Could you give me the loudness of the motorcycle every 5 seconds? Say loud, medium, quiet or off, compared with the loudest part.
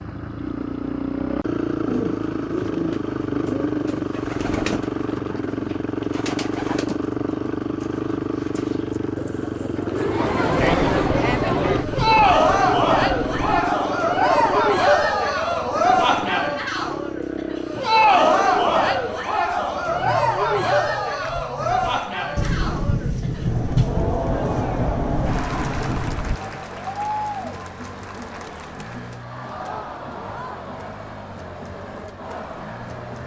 loud, loud, loud, medium, medium, quiet, quiet.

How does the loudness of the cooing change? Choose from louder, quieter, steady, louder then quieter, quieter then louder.
quieter then louder.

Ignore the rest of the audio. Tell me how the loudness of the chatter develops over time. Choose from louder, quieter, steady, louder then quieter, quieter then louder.
quieter.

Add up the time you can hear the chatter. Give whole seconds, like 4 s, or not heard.
23 s.